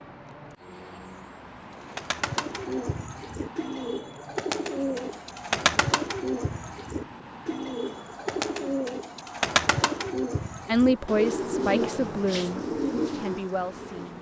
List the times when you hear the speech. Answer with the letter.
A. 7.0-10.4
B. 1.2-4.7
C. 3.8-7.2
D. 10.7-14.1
D.